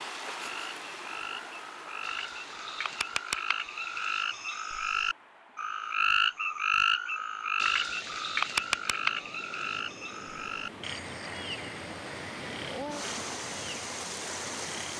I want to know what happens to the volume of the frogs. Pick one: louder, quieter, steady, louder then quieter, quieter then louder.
louder then quieter.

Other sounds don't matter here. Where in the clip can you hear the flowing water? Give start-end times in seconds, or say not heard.
0.0-14.9.